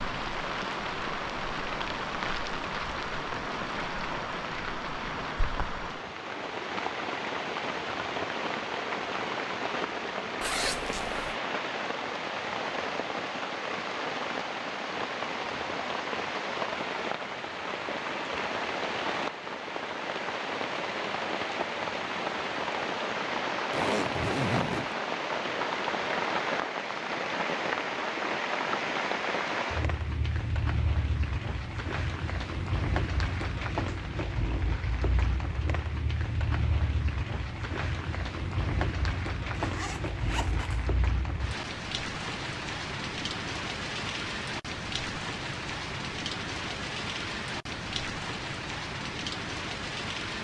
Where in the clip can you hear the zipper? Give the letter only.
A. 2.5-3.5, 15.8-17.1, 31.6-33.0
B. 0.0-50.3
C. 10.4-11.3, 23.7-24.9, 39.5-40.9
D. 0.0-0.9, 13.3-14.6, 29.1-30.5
C.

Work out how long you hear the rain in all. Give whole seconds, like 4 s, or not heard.
50 s.